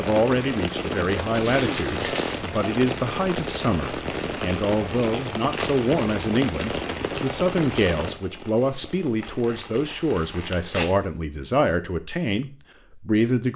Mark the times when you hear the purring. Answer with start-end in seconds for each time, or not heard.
not heard.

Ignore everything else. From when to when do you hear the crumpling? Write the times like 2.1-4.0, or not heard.
1.3-2.5, 5.5-7.3, 9.2-11.0.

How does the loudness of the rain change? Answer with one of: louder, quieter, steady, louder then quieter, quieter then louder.
quieter.